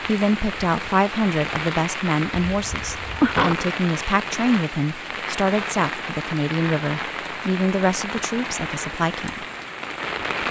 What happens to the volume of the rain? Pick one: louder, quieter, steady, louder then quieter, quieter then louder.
steady.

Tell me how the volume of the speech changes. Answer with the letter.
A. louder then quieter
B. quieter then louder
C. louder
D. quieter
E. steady
E.